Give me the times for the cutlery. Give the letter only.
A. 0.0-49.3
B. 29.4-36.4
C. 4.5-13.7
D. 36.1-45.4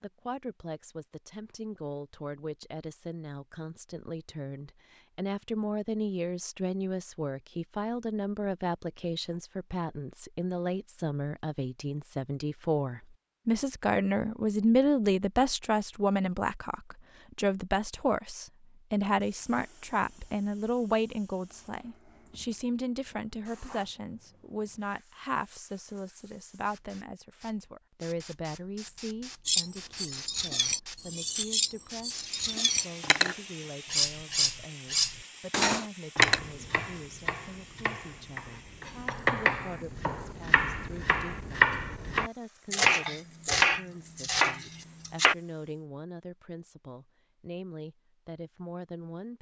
B.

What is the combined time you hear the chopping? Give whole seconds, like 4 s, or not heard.
9 s.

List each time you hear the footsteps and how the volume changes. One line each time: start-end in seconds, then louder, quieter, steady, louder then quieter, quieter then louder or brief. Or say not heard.
not heard.